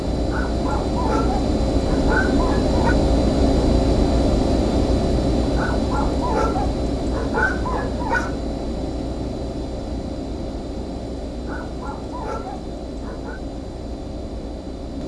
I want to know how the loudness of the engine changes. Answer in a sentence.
The volume of the engine goes down.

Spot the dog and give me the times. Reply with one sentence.
The dog can be heard from 0.3 to 3.0 s, from 5.5 to 8.4 s and from 11.4 to 13.4 s.